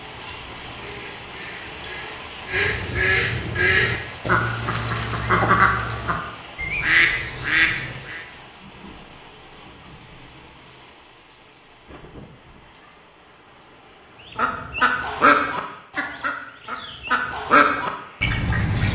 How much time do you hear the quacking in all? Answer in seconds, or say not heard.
13 s.